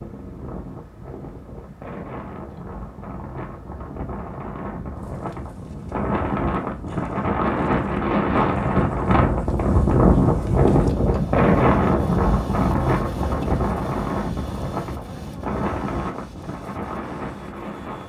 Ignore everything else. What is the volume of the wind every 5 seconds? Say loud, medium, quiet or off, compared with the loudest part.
quiet, loud, loud, medium.